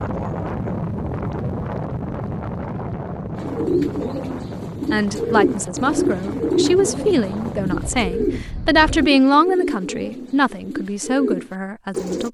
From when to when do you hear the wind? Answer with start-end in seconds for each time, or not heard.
0.0-9.1.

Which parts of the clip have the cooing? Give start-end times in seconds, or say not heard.
3.4-12.2.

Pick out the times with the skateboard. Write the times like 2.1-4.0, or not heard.
not heard.